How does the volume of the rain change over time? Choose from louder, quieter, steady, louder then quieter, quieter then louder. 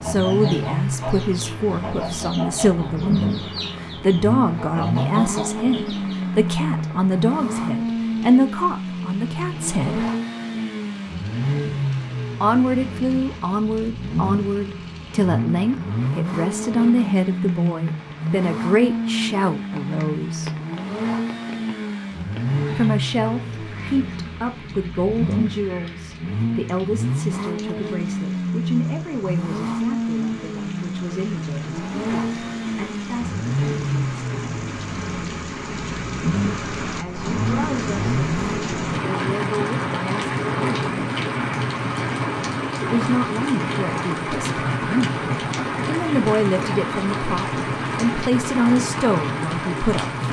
louder.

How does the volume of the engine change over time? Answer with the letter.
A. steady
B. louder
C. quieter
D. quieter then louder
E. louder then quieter
A.